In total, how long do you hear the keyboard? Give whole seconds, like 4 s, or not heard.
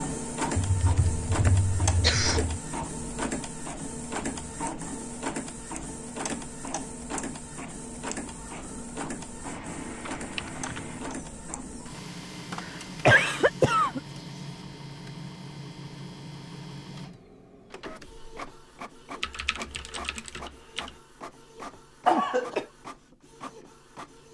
5 s.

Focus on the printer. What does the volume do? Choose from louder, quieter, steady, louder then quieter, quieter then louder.
quieter.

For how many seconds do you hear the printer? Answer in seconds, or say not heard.
24 s.